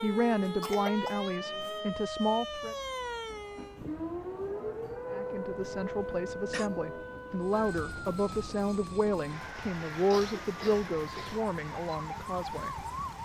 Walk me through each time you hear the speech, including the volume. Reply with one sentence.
The speech can be heard briefly from 0.0 to 2.8 s; and from 5.1 to 13.2 s, getting louder then quieter.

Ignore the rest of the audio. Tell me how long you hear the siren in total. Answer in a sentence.
The siren can be heard for 13 seconds in total.